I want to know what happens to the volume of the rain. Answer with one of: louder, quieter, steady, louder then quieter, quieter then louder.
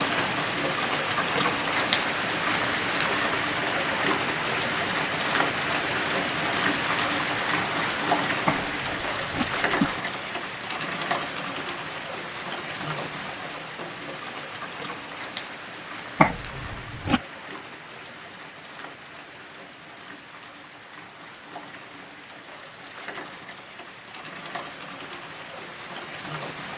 quieter.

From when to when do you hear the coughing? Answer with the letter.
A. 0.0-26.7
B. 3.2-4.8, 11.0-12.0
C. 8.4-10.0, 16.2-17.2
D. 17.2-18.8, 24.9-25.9
C.